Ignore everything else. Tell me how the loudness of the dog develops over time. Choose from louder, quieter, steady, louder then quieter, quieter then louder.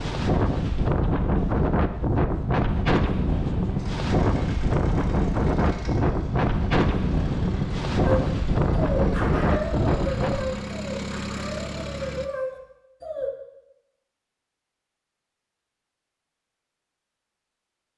quieter then louder.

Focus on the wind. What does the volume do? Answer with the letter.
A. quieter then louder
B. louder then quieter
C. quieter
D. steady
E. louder
D.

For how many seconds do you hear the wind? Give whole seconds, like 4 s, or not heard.
11 s.